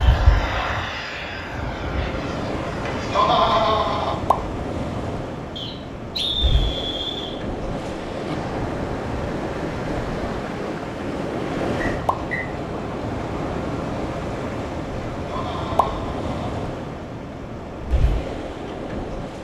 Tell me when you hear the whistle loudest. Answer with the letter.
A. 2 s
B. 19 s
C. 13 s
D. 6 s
D.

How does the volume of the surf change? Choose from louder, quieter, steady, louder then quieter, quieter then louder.
steady.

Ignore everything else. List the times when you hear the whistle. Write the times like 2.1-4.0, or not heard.
5.5-7.3, 11.8-12.4.